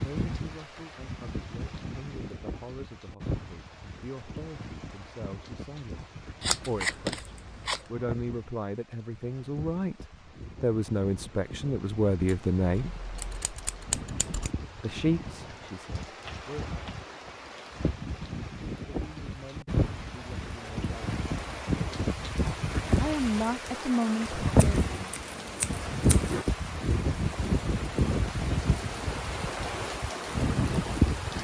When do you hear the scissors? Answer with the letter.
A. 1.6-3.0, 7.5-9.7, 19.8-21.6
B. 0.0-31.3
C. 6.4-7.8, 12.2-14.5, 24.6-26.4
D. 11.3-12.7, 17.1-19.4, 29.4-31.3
C.